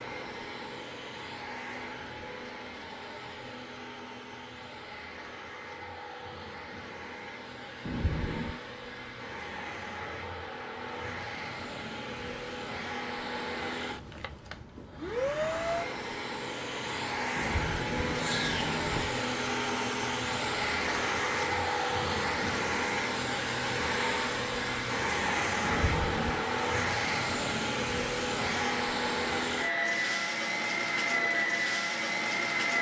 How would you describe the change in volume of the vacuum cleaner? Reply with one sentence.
The loudness of the vacuum cleaner goes up.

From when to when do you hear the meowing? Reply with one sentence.
The meowing can be heard from 7.8 to 8.6 s, from 17.4 to 19.1 s and from 25.6 to 26.4 s.